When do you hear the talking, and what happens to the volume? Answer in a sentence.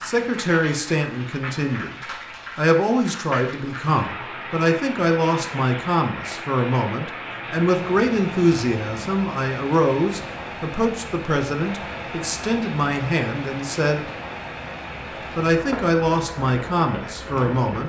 You can hear the talking from 0.0 to 14.1 s, at a steady volume; and briefly from 15.3 to 17.8 s.